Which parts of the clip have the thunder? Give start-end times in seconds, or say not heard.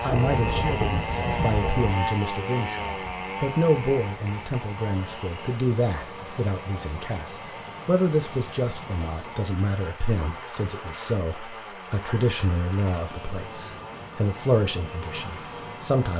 0.1-1.9.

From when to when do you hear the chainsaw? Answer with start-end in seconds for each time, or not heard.
0.0-16.1.